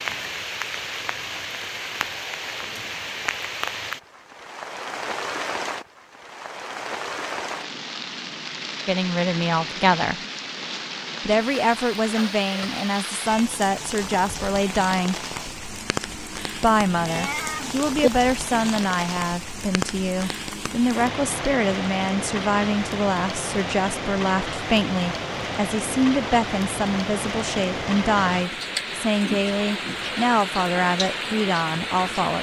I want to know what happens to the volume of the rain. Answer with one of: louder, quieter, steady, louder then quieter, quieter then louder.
steady.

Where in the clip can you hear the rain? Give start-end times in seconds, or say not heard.
0.0-32.3.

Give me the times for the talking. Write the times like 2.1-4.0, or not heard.
8.8-10.2, 11.2-15.2, 16.5-32.3.